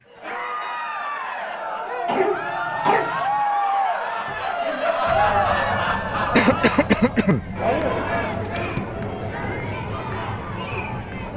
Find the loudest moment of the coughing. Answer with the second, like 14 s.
7 s.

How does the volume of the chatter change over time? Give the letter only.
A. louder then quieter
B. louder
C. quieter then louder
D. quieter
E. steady
A.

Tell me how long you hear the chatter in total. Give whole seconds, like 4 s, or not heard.
11 s.